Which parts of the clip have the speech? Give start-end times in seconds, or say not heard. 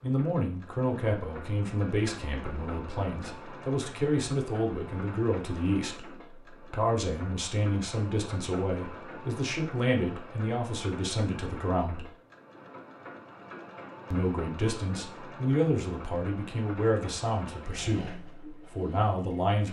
0.0-12.1, 14.1-19.6.